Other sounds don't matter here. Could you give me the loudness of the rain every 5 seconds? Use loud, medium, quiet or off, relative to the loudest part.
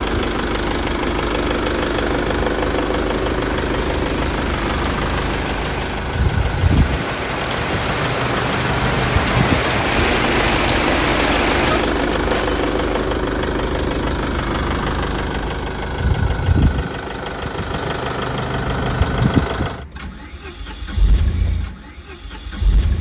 medium, loud, loud, off, off.